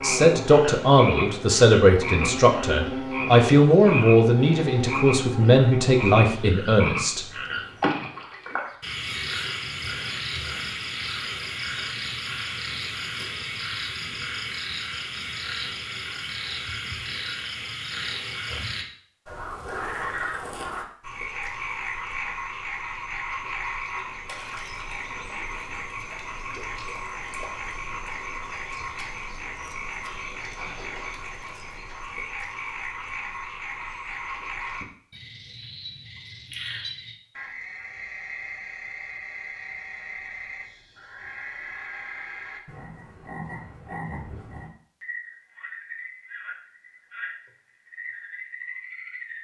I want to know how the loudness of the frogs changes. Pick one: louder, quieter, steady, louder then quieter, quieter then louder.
quieter.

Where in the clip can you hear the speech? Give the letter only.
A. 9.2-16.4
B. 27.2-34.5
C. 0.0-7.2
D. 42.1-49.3
C.